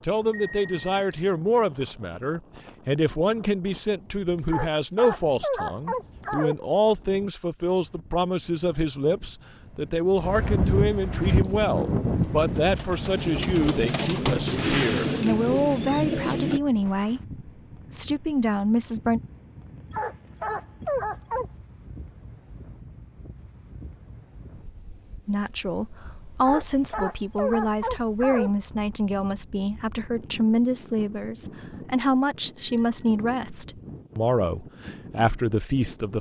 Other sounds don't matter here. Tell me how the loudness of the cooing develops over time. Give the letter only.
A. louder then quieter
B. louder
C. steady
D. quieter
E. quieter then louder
B.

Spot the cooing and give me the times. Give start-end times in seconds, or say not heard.
11.3-16.6.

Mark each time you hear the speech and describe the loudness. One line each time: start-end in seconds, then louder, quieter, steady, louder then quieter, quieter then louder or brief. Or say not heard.
0.0-19.2 steady
25.2-36.1 steady.